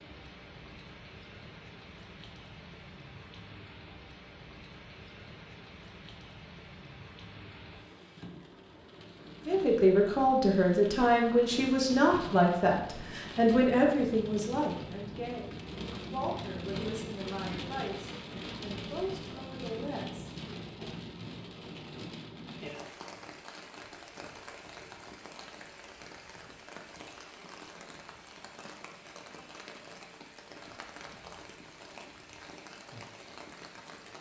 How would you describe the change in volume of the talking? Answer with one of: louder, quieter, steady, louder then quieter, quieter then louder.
quieter.